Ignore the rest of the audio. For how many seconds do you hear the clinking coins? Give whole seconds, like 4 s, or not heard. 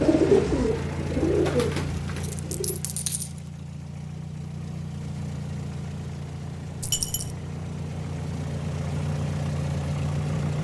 2 s.